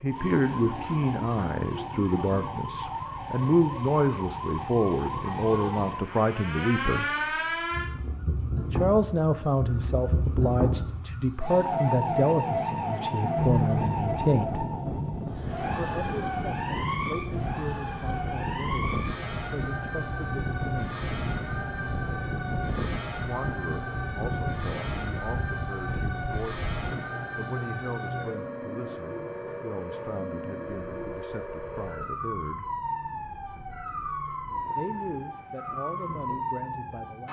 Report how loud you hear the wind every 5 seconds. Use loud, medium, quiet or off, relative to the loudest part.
off, off, loud, loud, loud, medium, quiet, quiet.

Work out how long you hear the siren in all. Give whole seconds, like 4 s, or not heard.
37 s.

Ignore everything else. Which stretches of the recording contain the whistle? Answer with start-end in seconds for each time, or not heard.
not heard.